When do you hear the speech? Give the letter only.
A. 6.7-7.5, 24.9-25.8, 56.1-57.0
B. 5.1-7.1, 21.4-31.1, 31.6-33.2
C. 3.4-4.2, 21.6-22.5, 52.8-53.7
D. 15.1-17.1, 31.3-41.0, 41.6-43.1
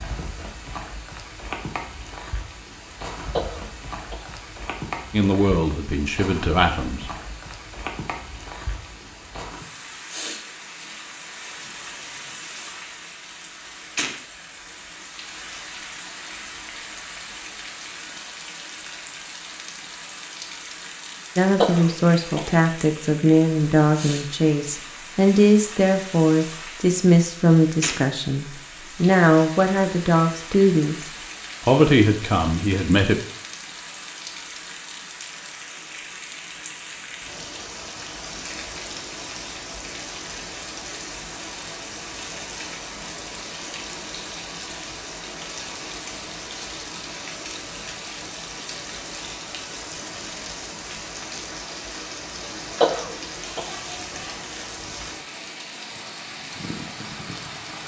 B.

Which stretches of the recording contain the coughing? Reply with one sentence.
You can hear the coughing from 3.4 to 4.2 s, from 21.6 to 22.5 s and from 52.8 to 53.7 s.